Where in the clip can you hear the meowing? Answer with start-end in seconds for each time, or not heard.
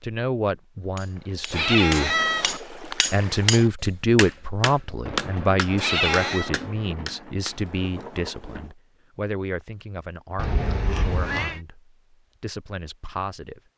1.5-2.6, 5.8-6.5, 10.3-11.6.